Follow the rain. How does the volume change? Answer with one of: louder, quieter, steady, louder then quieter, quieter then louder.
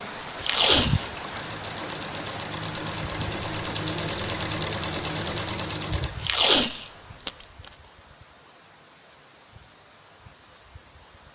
quieter.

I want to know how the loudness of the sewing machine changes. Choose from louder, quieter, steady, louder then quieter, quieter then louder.
louder.